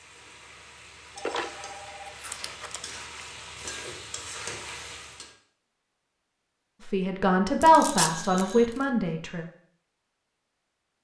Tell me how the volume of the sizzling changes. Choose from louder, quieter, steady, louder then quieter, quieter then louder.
louder.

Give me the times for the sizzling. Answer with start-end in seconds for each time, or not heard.
0.0-5.3.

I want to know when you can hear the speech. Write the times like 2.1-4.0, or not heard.
6.8-9.4.